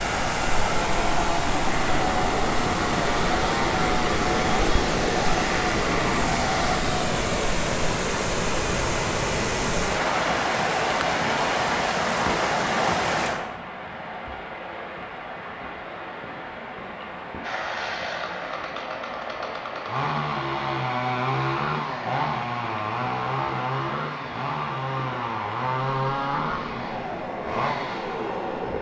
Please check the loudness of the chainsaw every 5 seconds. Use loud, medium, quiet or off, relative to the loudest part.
loud, loud, off, medium, loud, loud.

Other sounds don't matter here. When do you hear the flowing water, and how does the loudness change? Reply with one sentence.
You can hear the flowing water from 0.0 to 28.7 s, getting quieter.